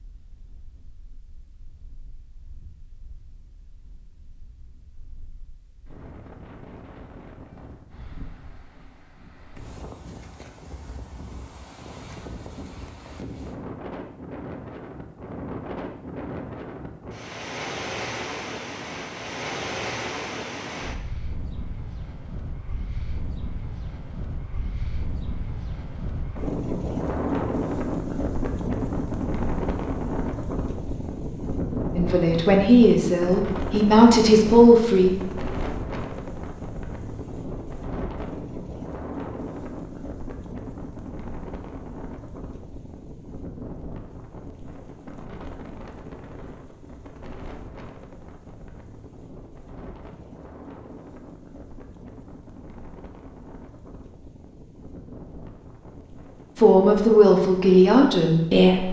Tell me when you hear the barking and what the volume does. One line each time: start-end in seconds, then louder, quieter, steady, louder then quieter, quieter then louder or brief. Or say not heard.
not heard.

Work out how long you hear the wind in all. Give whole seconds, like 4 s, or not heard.
59 s.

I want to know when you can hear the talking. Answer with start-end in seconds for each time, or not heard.
31.9-35.4, 56.5-58.8.